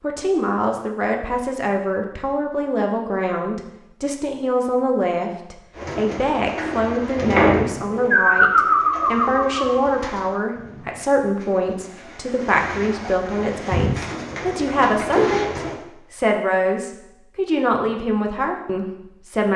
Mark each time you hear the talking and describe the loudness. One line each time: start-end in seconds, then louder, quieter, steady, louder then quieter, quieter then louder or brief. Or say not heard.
0.0-19.5 steady.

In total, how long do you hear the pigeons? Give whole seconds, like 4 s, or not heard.
10 s.